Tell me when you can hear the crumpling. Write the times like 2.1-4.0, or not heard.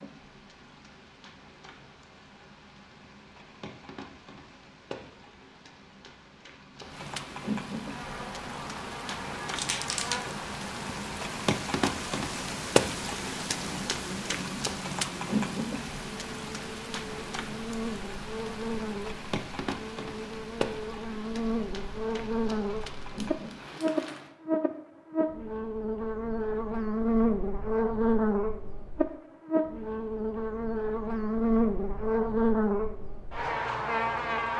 9.6-10.3, 22.8-24.2.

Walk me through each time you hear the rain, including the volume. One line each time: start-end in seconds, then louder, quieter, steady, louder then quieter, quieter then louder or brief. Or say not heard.
0.0-24.4 louder then quieter.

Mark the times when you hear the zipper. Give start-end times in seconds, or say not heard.
not heard.